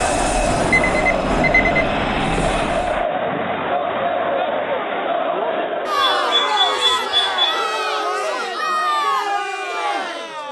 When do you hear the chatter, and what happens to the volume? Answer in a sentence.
The chatter can be heard from 0.0 to 10.4 s, at a steady volume.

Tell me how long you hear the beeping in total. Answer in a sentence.
The beeping can be heard for 3 seconds in total.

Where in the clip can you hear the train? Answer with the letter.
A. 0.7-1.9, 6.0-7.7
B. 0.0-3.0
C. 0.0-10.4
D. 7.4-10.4
B.